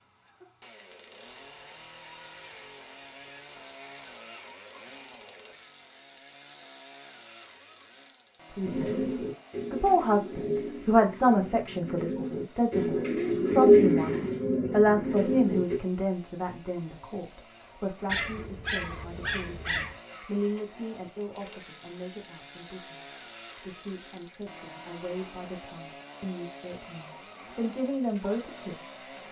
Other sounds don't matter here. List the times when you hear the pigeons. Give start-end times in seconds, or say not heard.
8.7-15.8.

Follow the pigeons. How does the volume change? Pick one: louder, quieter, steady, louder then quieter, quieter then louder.
louder then quieter.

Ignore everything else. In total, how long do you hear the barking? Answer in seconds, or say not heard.
2 s.